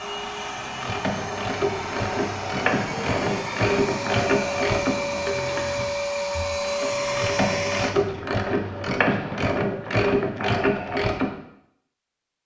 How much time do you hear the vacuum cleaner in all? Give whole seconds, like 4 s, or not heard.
8 s.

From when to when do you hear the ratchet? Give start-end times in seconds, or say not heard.
0.5-11.3.